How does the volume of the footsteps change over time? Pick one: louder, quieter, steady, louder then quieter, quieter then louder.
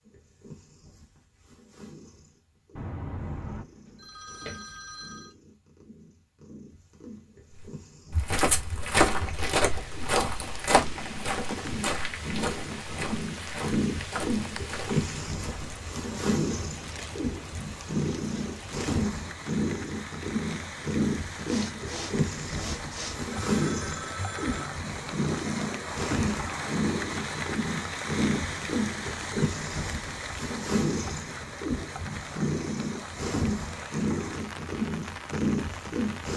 quieter.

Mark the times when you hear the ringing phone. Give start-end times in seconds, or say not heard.
2.8-5.3, 23.3-24.6.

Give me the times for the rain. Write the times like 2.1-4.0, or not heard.
9.5-36.3.